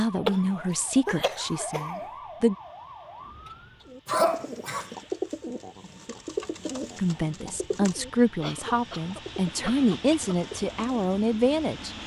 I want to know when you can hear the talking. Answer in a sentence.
The talking can be heard from 0.0 to 2.5 s and from 7.0 to 11.9 s.